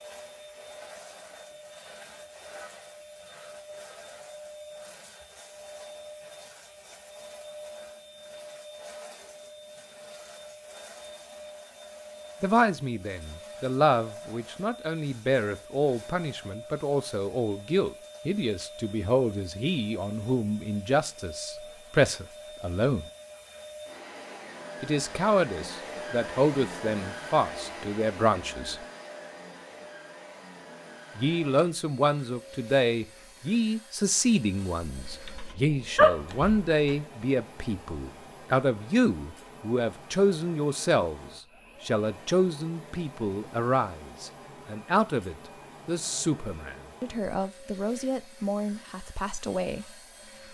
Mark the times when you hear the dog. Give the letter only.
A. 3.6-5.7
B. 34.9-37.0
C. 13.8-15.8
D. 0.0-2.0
B.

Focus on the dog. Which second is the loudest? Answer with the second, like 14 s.
36 s.